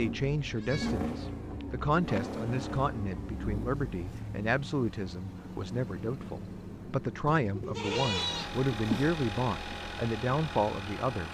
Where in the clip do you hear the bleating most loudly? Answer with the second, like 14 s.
8 s.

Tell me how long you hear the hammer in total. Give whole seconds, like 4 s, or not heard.
not heard.